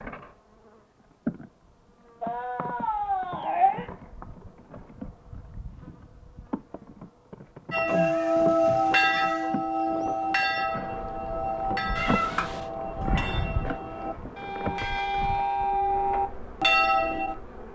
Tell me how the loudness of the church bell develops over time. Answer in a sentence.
The volume of the church bell goes down, then up.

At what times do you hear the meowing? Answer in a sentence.
You can hear the meowing from 2.2 to 3.9 s, from 7.8 to 9.5 s and from 11.9 to 12.6 s.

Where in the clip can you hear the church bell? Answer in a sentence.
The church bell can be heard from 7.7 to 17.4 s.